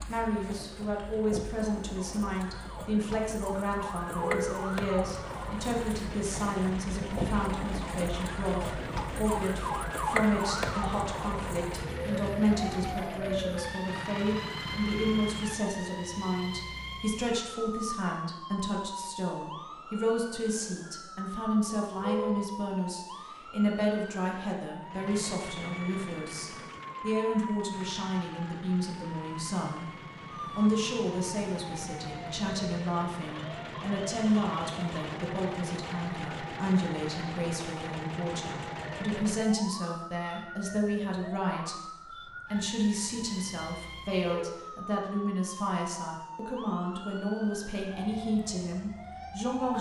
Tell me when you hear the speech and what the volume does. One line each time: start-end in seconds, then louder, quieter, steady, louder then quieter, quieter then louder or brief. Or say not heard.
0.1-29.9 steady
30.6-49.7 steady.